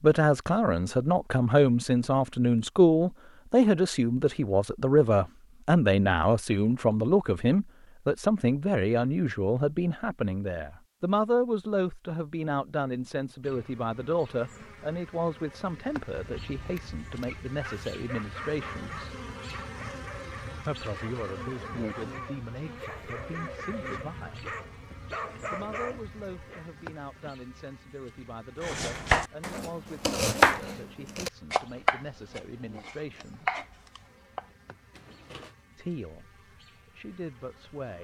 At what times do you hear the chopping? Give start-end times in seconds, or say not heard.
28.6-35.5.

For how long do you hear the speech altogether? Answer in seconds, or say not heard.
33 s.